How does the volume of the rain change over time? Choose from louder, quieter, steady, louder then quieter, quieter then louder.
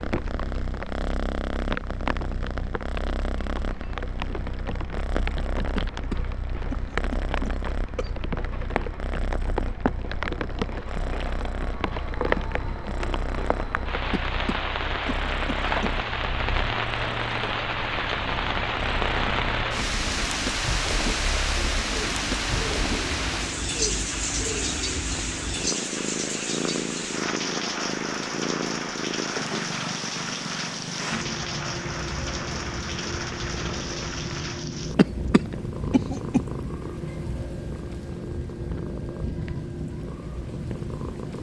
louder then quieter.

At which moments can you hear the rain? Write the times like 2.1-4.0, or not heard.
0.0-41.3.